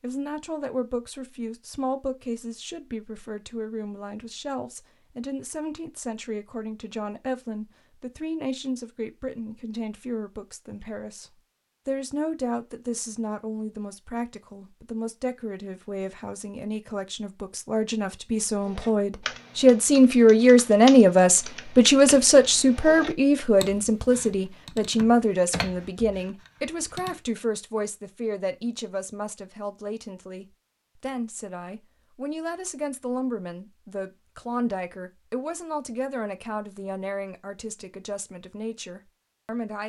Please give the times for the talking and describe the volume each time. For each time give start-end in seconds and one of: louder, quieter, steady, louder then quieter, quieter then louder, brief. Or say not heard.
0.0-39.8 louder then quieter.